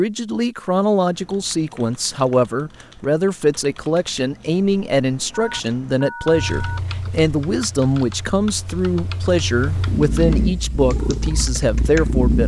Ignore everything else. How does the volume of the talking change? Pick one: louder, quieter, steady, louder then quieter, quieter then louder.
steady.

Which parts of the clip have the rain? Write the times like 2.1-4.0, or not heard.
not heard.